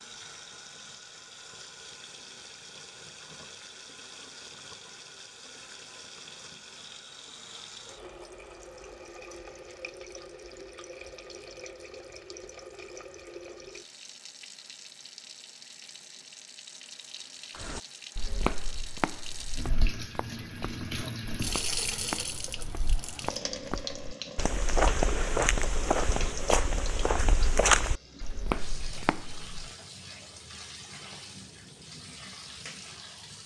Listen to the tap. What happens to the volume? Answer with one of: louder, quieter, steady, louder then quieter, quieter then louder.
louder then quieter.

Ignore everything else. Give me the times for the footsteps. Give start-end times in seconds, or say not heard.
17.6-29.4.